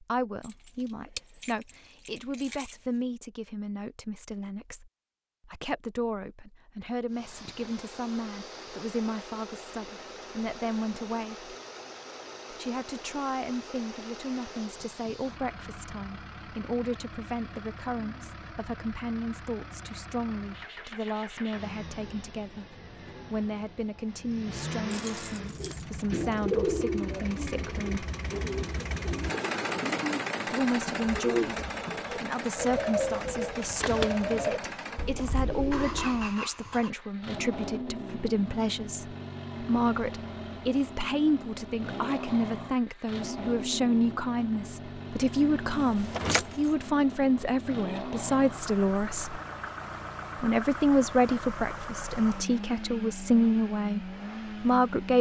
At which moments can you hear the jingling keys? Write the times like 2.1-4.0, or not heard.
0.4-2.8, 24.9-25.9, 45.7-46.7.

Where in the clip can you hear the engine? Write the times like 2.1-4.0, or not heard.
7.1-55.1.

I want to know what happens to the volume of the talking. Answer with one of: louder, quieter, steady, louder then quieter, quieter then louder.
louder.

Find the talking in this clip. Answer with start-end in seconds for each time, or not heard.
0.0-11.5, 12.5-28.1, 30.5-49.4, 50.4-55.1.